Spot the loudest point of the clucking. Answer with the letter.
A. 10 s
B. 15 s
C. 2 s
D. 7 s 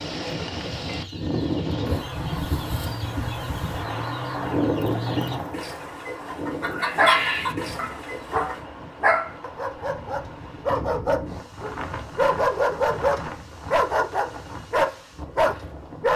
D.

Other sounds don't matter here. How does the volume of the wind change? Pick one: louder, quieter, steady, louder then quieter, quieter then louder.
quieter.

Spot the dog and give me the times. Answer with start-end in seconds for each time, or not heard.
7.0-16.1.